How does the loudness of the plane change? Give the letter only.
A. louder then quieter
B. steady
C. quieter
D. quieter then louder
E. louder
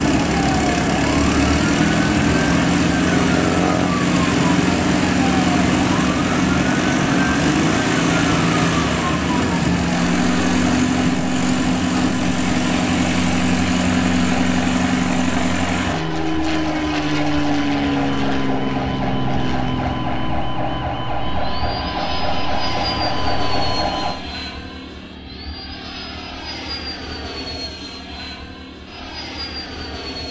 C.